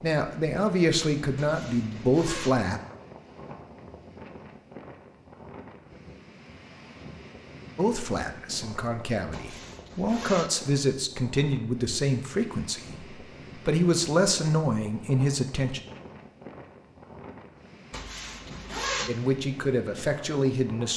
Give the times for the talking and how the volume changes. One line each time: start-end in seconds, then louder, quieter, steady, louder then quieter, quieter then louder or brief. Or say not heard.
0.0-2.8 brief
7.8-15.8 louder
19.1-20.9 brief.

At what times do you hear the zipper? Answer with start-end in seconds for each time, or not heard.
1.4-2.5, 9.3-10.5, 17.9-19.1.